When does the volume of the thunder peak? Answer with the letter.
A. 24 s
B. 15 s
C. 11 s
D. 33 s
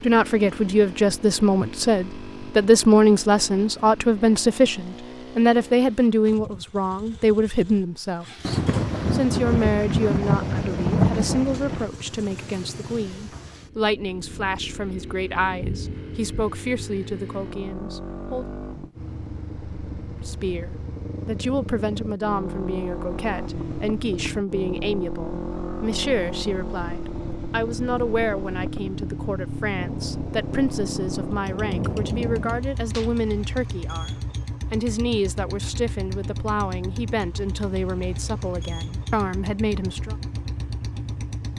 C.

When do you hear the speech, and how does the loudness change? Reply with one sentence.
You can hear the speech from 0.0 to 18.4 s, getting quieter; and from 20.2 to 40.1 s, at a steady volume.